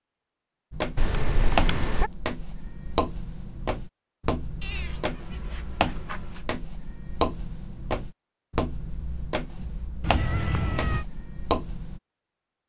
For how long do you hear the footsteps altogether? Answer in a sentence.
The footsteps can be heard for 11 seconds in total.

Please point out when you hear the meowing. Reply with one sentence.
You can hear the meowing from 0.9 to 2.1 s, from 4.6 to 6.5 s and from 10.0 to 11.1 s.